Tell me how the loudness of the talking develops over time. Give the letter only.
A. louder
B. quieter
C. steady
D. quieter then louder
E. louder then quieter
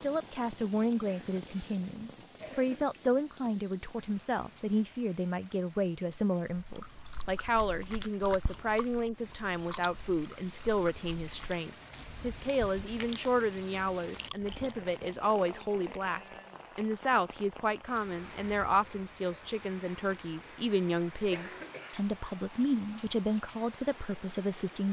C.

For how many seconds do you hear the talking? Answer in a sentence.
You can hear the talking for 25 seconds altogether.